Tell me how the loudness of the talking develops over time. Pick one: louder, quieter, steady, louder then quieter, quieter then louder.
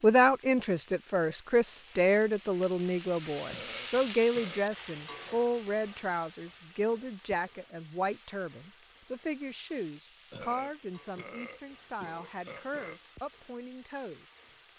quieter.